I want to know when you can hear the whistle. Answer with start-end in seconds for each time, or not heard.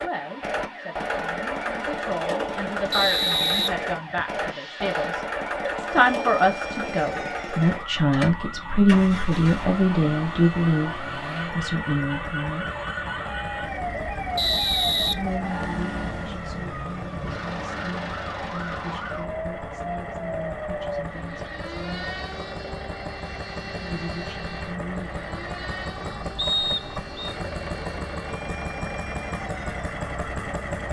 2.9-4.4, 14.3-15.8, 26.4-27.4.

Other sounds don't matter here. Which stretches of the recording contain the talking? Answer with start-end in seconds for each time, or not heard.
0.0-12.7, 14.9-22.1, 23.8-25.2.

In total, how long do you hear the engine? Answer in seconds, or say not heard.
31 s.